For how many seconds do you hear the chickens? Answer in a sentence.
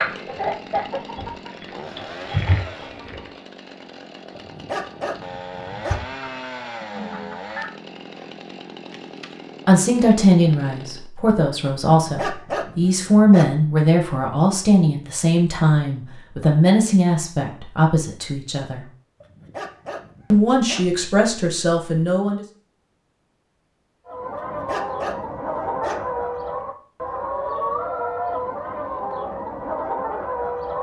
The chickens can be heard for 12 seconds in total.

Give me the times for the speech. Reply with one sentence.
You can hear the speech from 9.7 to 18.9 s and from 20.3 to 22.4 s.